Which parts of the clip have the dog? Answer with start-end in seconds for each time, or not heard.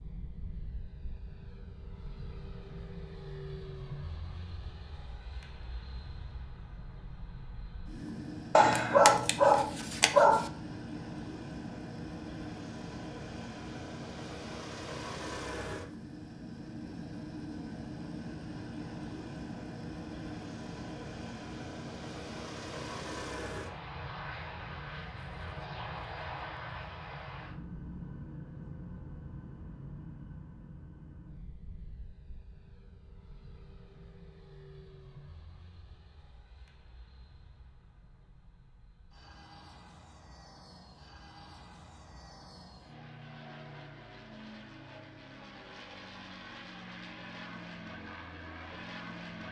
8.6-10.5.